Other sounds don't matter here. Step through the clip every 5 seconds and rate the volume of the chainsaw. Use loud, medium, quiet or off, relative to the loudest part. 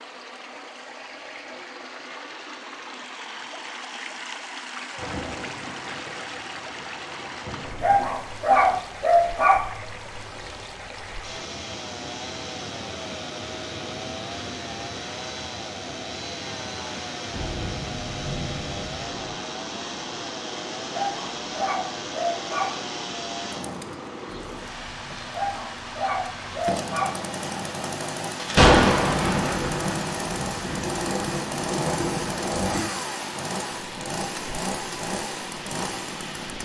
off, off, medium, medium, medium, loud, loud, loud.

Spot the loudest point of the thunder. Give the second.
29 s.